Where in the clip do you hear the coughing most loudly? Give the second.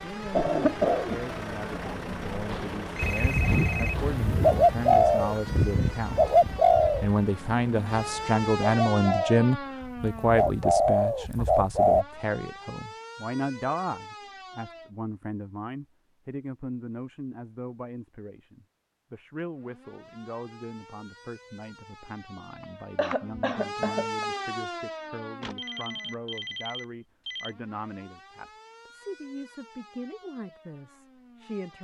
1 s.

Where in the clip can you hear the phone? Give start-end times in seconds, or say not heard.
2.5-4.2, 25.4-27.6.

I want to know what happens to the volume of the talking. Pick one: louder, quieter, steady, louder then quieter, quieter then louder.
louder then quieter.